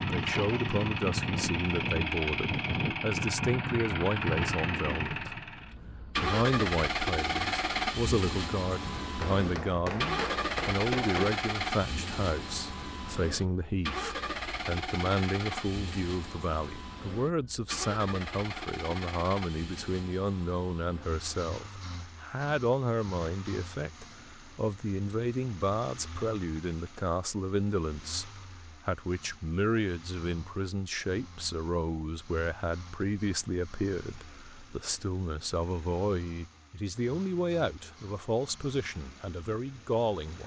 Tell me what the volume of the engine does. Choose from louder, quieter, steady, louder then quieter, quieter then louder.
quieter.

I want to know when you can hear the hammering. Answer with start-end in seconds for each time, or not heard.
9.0-11.4.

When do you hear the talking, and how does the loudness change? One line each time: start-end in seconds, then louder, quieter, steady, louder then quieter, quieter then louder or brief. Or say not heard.
0.1-40.4 steady.